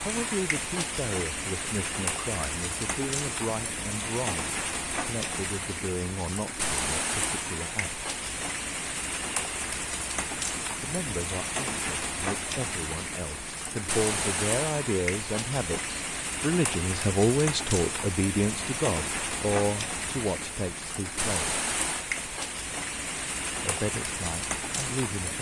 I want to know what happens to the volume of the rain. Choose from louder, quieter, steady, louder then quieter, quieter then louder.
steady.